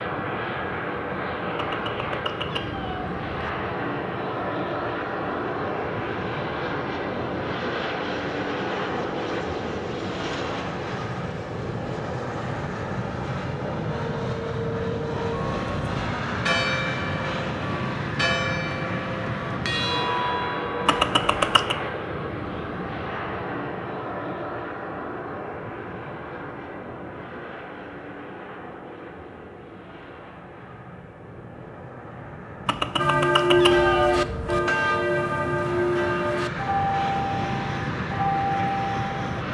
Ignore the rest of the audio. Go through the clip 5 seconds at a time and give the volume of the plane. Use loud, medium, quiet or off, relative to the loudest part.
loud, loud, loud, loud, loud, medium, medium, loud.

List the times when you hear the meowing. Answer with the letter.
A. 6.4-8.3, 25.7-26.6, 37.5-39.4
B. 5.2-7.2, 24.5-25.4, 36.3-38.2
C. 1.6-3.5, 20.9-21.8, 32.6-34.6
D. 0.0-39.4
C.